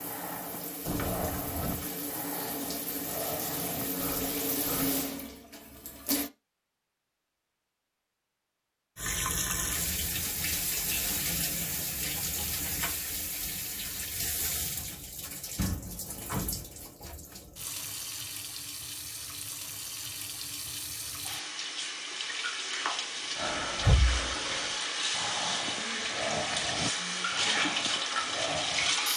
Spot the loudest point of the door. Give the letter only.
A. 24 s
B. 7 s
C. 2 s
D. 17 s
A.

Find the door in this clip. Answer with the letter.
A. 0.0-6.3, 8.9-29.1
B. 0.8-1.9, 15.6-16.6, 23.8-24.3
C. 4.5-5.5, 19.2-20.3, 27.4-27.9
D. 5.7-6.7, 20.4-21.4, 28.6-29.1
B.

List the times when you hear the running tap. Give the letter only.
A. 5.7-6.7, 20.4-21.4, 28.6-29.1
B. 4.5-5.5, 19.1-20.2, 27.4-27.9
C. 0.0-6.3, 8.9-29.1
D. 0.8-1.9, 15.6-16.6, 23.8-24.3
C.